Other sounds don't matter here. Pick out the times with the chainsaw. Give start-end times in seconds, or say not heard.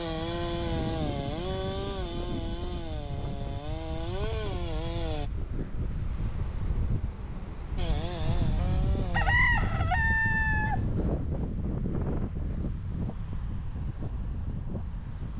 0.0-5.3, 7.8-9.3.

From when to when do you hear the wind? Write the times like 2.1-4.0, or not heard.
0.0-15.3.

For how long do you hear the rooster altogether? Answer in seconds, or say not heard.
2 s.